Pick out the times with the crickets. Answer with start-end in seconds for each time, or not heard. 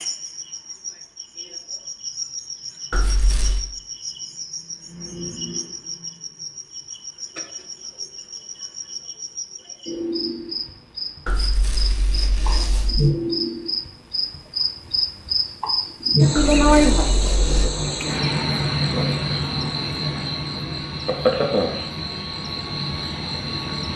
0.0-23.9.